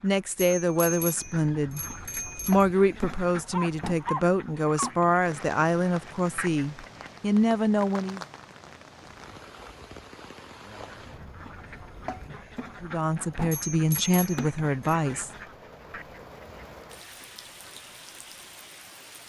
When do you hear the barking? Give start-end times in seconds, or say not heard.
3.5-4.9.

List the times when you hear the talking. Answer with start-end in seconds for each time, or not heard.
0.0-8.2, 12.8-15.3.